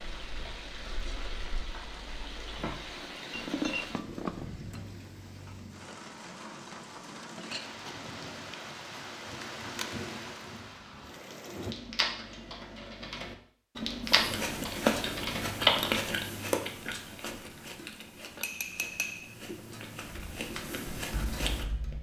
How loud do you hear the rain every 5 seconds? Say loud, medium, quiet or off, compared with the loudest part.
loud, loud, loud, off, off.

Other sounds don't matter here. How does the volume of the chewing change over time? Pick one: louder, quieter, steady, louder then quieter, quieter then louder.
quieter then louder.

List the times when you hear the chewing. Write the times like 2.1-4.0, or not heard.
14.0-21.6.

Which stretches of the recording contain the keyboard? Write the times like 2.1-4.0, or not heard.
0.0-3.0, 11.6-16.1, 20.1-21.9.